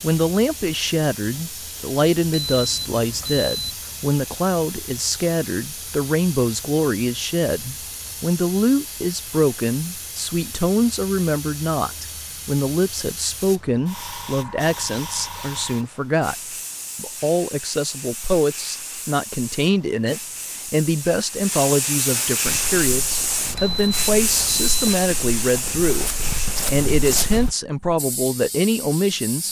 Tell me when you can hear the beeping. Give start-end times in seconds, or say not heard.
2.3-3.8, 23.6-24.9.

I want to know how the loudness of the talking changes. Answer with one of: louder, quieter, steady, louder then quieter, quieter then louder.
steady.